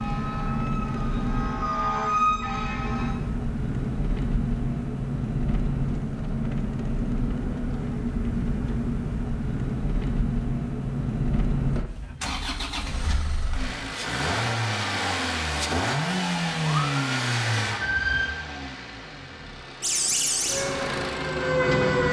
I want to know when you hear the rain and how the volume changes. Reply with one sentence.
The rain can't be heard in this clip.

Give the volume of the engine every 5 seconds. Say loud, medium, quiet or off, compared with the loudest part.
loud, loud, loud, loud, medium.